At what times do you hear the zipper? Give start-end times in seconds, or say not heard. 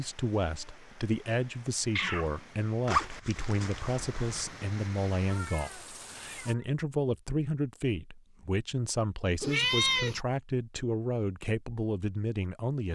2.9-4.5.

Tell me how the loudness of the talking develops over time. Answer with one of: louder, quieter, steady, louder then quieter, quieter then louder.
steady.